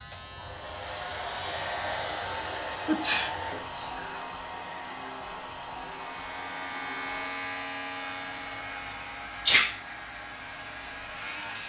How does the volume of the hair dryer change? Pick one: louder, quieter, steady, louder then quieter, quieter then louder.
quieter.